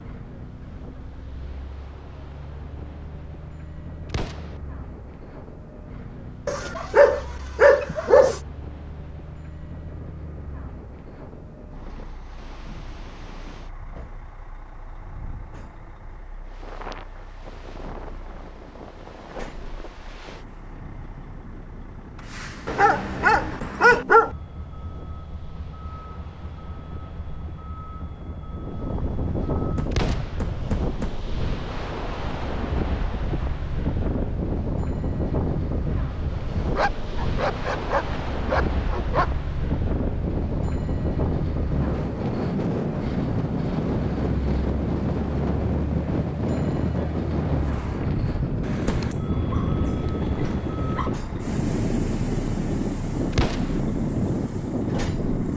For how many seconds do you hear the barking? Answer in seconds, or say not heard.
9 s.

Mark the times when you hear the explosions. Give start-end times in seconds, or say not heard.
4.1-4.6, 29.9-30.4, 53.3-53.8.